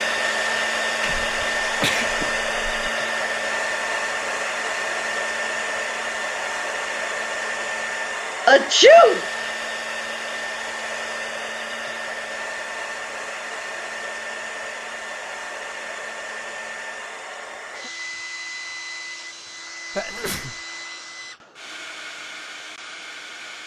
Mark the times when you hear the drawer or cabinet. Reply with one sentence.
The drawer or cabinet can't be heard in this clip.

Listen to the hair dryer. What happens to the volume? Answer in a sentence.
The loudness of the hair dryer goes down.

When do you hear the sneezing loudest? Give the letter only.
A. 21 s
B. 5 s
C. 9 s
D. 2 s
C.